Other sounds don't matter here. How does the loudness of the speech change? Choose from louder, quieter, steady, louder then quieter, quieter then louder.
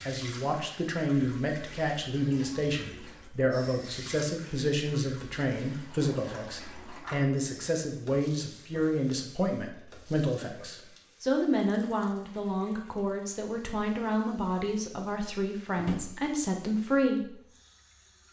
steady.